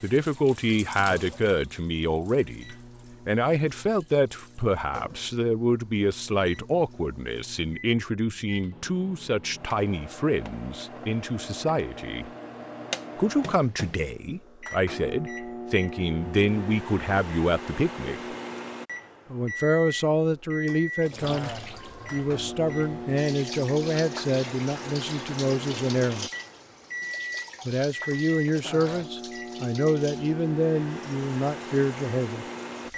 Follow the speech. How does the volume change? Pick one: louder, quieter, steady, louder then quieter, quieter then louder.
steady.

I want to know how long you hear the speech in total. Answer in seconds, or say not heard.
29 s.